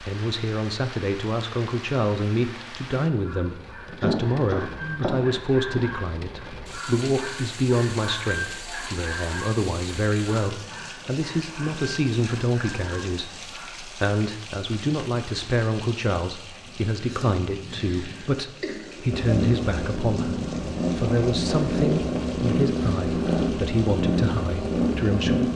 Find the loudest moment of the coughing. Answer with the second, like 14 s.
4 s.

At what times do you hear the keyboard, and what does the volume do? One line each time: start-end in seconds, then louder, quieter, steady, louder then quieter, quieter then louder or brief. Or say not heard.
not heard.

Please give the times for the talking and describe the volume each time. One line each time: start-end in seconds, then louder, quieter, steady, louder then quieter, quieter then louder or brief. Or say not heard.
0.0-25.5 steady.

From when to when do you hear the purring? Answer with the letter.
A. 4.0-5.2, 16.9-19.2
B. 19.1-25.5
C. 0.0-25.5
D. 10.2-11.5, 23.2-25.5
B.